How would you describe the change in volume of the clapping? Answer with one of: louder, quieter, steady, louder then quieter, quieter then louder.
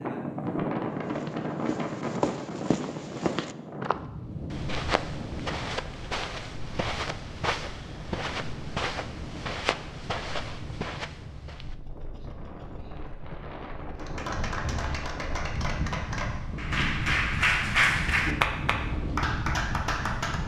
louder then quieter.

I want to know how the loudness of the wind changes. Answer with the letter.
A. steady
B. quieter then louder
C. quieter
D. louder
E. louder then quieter
B.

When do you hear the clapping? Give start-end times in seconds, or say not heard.
13.9-20.4.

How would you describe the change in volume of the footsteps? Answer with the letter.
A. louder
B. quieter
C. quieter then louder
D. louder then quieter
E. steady
E.